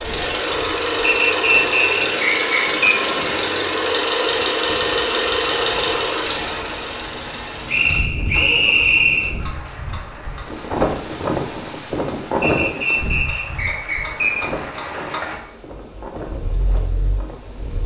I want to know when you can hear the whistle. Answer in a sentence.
You can hear the whistle from 1.2 to 2.9 s, from 7.7 to 9.3 s and from 12.4 to 14.4 s.